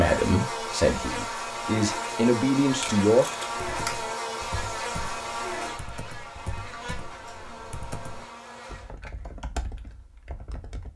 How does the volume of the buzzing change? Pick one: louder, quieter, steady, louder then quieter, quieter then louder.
quieter.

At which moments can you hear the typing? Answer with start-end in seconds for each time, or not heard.
3.5-10.9.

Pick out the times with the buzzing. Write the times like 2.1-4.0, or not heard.
0.0-8.9.